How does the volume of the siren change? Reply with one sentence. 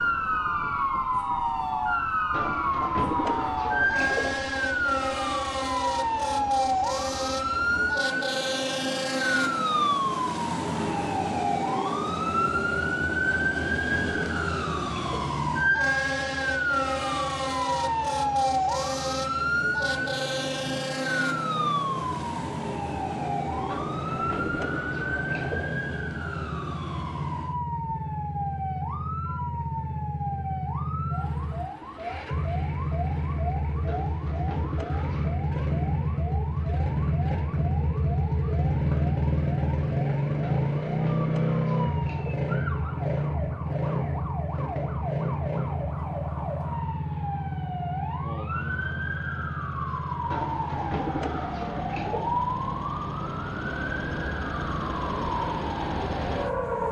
The loudness of the siren goes down, then up.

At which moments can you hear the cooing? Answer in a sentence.
The cooing can be heard from 2.3 to 4.3 s, from 13.2 to 15.3 s, from 23.6 to 25.7 s, from 33.9 to 35.4 s, from 40.4 to 42.5 s and from 50.3 to 52.3 s.